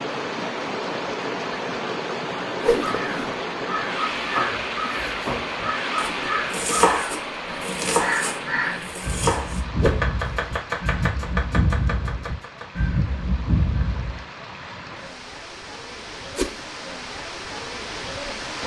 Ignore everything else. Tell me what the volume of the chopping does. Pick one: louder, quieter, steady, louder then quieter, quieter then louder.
louder then quieter.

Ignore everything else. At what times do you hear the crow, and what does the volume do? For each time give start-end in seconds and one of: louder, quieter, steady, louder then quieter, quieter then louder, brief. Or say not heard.
2.9-14.2 steady.